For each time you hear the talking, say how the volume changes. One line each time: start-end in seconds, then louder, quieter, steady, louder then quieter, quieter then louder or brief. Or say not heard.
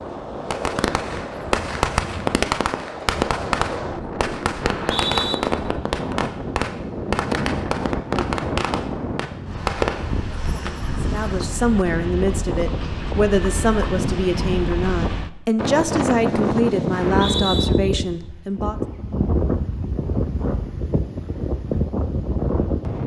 11.1-18.8 steady.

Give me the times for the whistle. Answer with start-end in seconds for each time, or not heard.
4.6-5.3, 16.9-17.7.